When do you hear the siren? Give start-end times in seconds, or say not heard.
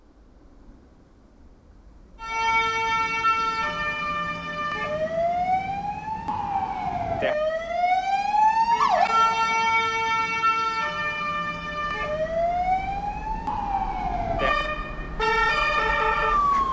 2.2-16.6.